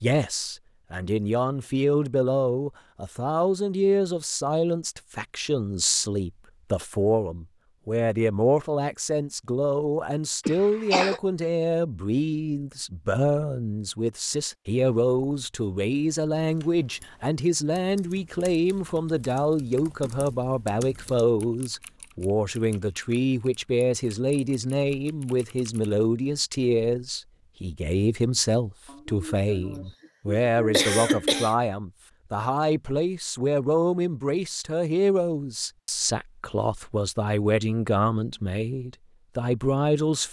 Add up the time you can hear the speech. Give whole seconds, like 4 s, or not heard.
40 s.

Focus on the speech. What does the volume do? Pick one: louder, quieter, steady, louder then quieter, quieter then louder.
steady.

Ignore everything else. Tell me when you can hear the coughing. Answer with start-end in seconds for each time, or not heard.
10.4-11.2, 28.9-31.6.